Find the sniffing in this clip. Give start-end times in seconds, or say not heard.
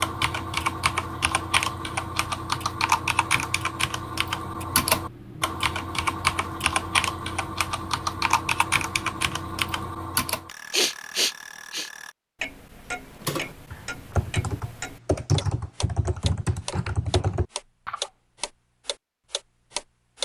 10.7-11.9.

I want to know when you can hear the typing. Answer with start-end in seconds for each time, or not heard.
0.0-10.5, 13.1-18.1.